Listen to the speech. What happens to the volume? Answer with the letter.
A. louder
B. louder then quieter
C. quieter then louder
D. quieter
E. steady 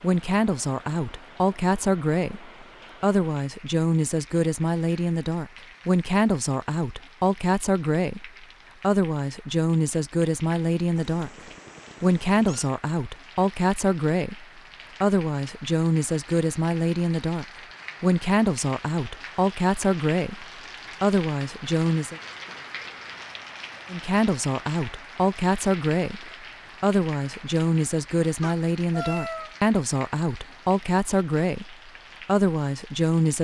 E.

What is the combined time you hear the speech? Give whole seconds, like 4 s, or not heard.
31 s.